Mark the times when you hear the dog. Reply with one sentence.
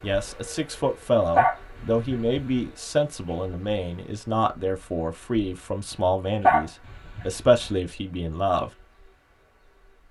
The dog can be heard from 1.4 to 2.4 s and from 6.4 to 7.7 s.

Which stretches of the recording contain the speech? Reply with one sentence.
The speech can be heard from 0.0 to 8.7 s.